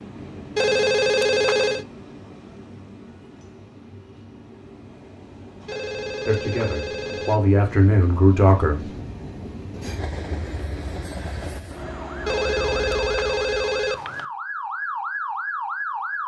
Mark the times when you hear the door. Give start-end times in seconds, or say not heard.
not heard.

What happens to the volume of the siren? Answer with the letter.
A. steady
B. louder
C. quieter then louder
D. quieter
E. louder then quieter
B.